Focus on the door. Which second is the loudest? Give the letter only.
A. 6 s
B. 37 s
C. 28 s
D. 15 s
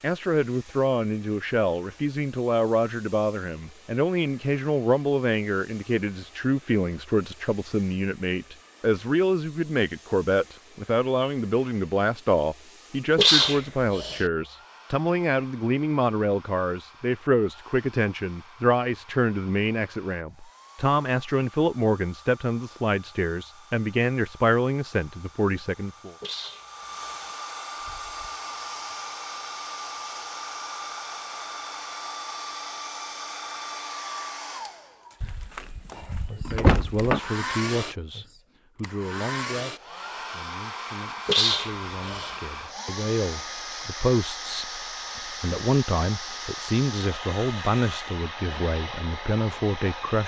B.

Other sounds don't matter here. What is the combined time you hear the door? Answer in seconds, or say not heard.
2 s.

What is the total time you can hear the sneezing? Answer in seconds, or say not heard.
3 s.